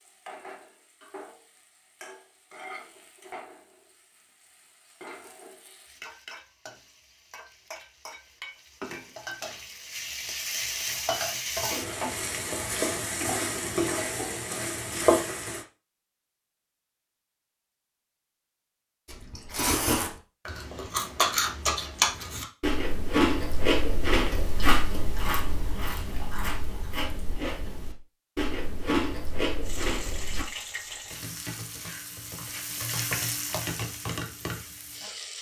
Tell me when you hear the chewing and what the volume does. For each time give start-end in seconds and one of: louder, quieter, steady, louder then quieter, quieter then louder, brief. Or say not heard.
19.1-30.4 quieter then louder.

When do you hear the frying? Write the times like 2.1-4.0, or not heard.
0.0-15.7, 29.6-35.3.